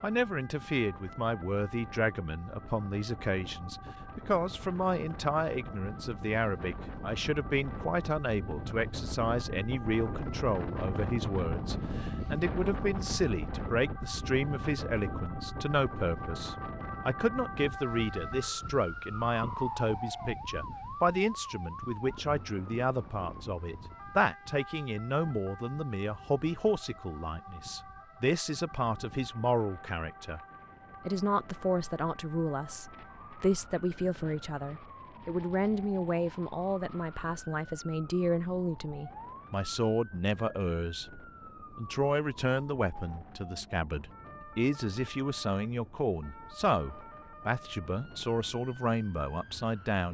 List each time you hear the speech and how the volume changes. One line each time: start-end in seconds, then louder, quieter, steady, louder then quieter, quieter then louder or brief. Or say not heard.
0.0-30.4 steady
31.1-41.0 steady
41.8-50.0 steady.